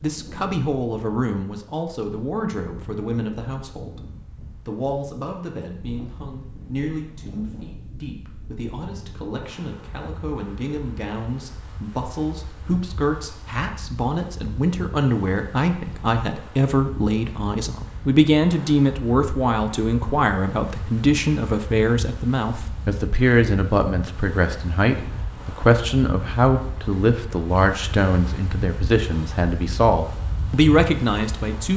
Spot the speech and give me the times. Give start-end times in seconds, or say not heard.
0.0-31.7.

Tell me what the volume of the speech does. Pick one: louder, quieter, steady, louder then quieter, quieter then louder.
louder.